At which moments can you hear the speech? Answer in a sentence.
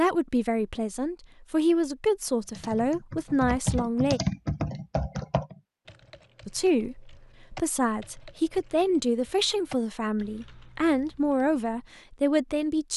You can hear the speech from 0.0 to 4.2 s and from 6.5 to 12.9 s.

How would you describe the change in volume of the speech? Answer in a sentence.
The loudness of the speech stays about the same.